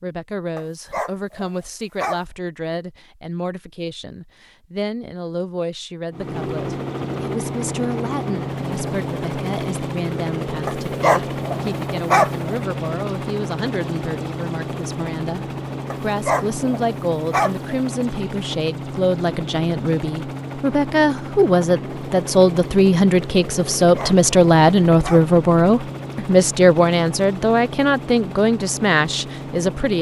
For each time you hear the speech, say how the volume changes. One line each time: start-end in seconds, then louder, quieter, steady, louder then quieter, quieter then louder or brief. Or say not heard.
0.0-29.9 louder.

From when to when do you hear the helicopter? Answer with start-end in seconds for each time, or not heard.
6.1-29.9.